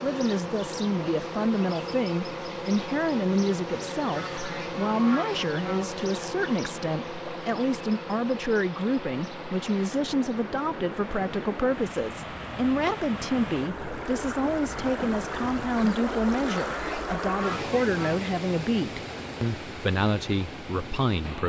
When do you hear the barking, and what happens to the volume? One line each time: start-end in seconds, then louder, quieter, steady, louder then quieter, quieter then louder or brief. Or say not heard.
not heard.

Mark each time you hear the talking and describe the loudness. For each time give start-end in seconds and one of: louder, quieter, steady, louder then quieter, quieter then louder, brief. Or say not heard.
0.0-21.4 steady.